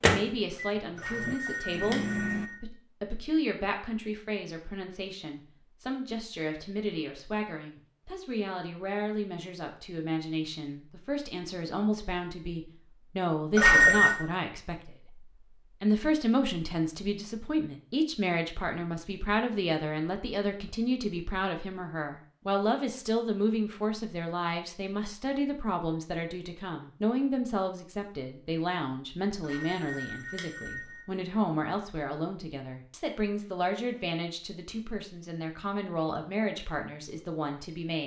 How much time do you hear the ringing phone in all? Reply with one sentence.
You can hear the ringing phone for 4 seconds altogether.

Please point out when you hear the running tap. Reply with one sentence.
The running tap can't be heard in this clip.